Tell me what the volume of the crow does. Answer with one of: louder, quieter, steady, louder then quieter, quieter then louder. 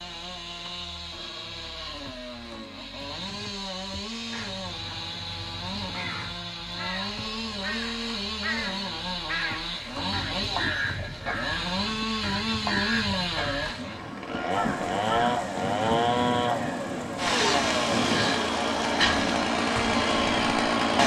louder.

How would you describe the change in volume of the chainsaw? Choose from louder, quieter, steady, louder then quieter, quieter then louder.
louder.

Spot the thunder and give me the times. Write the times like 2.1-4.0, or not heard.
14.5-18.4.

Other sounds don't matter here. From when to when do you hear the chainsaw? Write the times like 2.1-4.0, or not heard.
0.0-21.0.